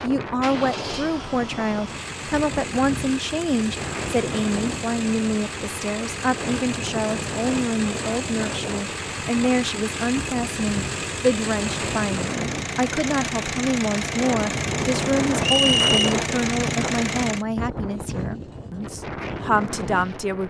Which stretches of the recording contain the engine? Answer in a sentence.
You can hear the engine from 0.2 to 17.4 s.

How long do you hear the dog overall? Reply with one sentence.
You can't hear the dog here.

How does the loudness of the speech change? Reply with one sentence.
The loudness of the speech stays about the same.